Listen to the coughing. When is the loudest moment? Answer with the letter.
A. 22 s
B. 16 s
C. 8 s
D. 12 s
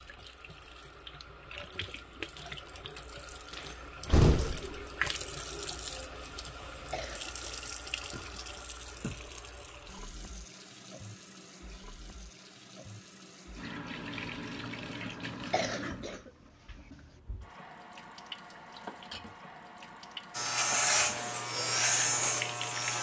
B.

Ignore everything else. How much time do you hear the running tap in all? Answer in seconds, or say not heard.
23 s.